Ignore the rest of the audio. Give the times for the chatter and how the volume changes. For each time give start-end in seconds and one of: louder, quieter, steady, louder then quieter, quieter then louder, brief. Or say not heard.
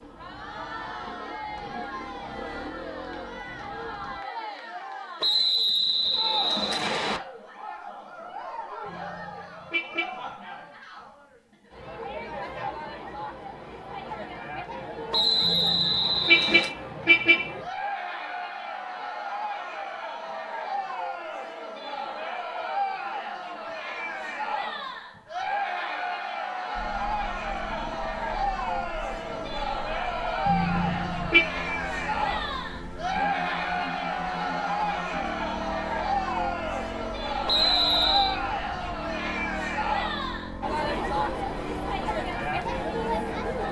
0.0-43.6 louder.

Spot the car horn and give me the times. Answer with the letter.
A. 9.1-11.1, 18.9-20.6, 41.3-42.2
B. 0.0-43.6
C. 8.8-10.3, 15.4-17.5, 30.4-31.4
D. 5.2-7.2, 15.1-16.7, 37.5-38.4
C.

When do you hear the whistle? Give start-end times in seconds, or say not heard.
5.2-7.2, 15.1-16.7, 37.5-38.4.